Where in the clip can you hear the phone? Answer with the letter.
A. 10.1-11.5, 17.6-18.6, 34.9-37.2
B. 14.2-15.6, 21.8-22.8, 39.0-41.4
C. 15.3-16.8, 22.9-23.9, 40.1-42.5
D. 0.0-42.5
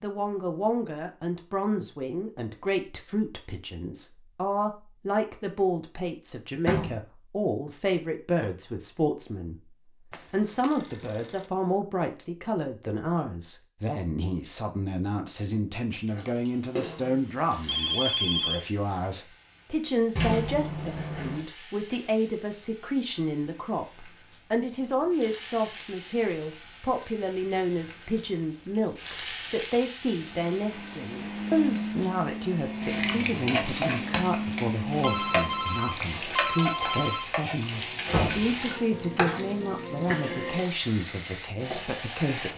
A.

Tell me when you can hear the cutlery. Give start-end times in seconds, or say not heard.
not heard.